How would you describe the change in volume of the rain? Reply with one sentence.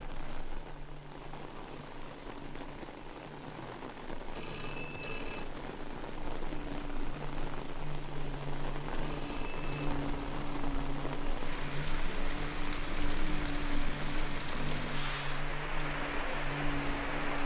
The volume of the rain goes up.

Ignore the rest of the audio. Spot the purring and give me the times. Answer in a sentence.
The purring can't be heard in this clip.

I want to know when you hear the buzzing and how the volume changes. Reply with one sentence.
The buzzing can be heard from 0.0 to 17.4 s, getting louder.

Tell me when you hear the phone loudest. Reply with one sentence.
The volume of the phone peaks at 5 seconds.